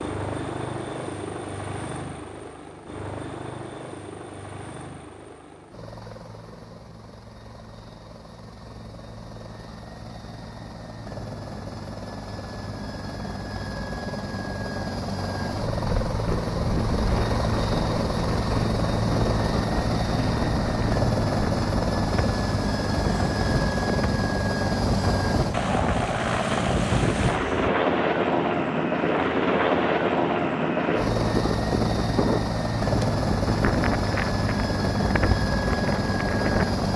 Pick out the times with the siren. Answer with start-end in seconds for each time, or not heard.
not heard.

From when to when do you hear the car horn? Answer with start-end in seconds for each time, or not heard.
not heard.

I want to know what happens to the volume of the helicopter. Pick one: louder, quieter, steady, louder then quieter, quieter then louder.
louder.